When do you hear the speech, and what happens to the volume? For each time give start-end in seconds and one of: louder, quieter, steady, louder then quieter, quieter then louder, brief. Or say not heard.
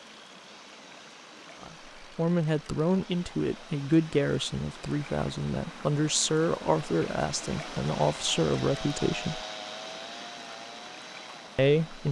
1.6-9.4 steady
11.6-12.0 brief.